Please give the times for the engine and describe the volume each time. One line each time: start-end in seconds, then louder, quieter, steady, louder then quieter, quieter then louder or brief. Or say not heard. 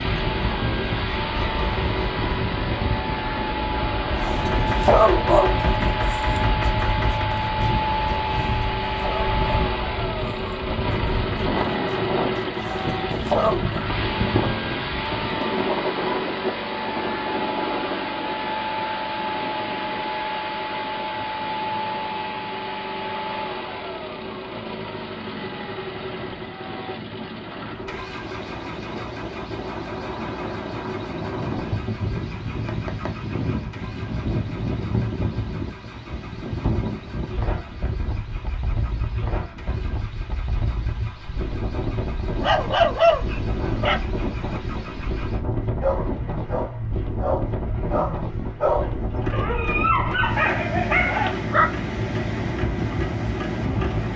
0.0-54.1 quieter then louder.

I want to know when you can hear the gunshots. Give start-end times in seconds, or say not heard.
4.5-7.3.